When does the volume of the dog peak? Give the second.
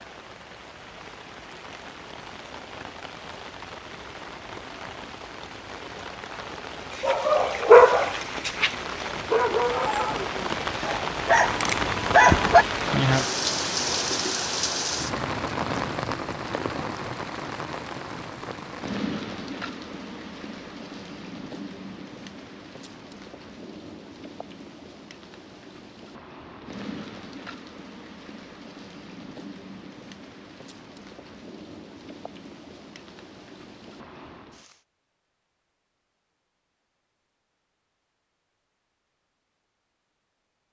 8 s.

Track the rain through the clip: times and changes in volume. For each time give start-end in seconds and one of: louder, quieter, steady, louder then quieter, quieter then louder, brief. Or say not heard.
0.0-34.8 louder then quieter.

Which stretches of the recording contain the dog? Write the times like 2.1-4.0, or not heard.
7.0-12.7.